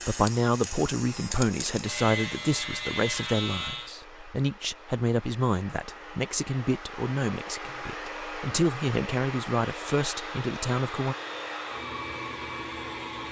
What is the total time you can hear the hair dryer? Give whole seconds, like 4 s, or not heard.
13 s.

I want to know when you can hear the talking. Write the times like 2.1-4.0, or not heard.
0.1-11.2.